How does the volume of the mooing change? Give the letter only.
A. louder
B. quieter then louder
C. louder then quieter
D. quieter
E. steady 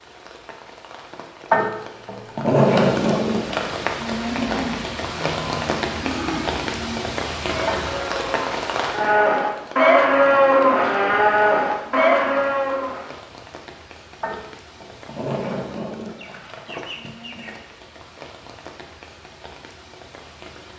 A.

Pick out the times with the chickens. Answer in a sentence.
You can hear the chickens from 16.1 to 17.6 s.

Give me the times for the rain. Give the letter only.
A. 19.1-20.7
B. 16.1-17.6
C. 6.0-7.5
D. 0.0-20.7
D.